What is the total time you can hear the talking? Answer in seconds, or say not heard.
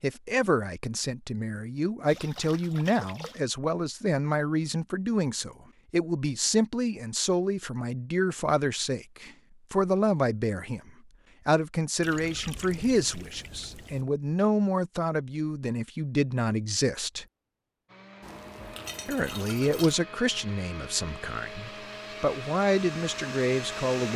22 s.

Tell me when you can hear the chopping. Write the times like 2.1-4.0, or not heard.
not heard.